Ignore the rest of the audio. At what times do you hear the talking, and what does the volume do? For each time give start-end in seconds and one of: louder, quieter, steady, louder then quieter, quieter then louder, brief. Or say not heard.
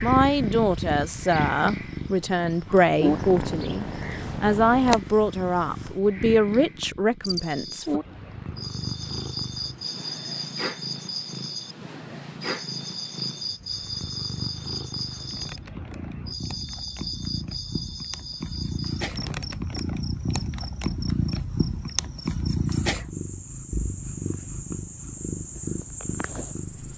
0.0-8.0 steady.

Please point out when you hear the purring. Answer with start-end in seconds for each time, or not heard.
0.0-26.9.